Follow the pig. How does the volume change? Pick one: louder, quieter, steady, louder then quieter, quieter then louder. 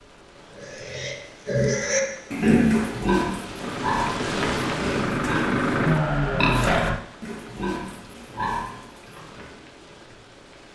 quieter.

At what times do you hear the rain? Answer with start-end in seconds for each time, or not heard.
0.0-10.7.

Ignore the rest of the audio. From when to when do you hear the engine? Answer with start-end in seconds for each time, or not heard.
3.5-7.0.